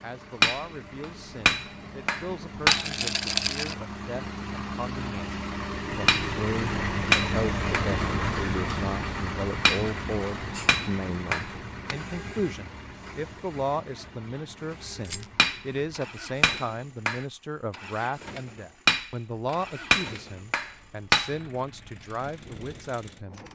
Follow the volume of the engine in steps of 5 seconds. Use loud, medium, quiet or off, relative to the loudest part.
medium, loud, medium, quiet, quiet.